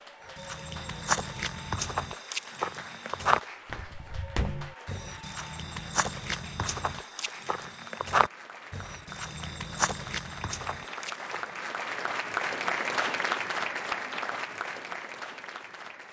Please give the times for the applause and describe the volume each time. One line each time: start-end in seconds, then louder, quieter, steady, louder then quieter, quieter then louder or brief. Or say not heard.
0.0-16.0 louder.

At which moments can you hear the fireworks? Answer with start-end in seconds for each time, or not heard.
not heard.